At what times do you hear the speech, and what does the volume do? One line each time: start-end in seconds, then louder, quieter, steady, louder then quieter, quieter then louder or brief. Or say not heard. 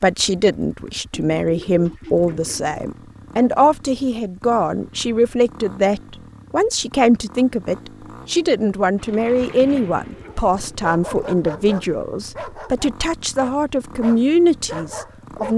0.0-15.5 steady.